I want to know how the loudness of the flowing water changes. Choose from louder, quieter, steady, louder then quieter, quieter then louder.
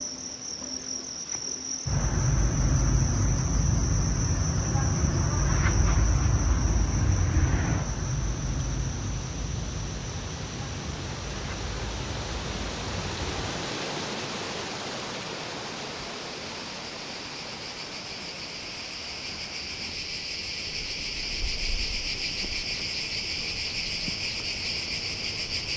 louder then quieter.